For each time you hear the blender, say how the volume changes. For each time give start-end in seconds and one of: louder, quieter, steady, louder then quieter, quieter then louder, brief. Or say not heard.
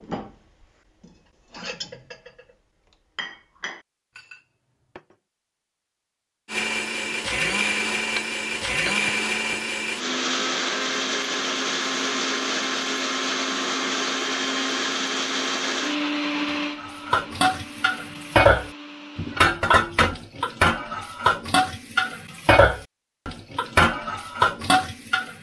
6.5-19.5 quieter.